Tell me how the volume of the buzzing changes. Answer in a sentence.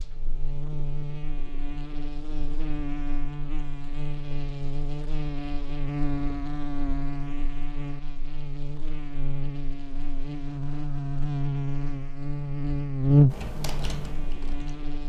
The loudness of the buzzing goes up.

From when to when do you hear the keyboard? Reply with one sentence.
You can hear the keyboard from 13.2 to 14.9 s.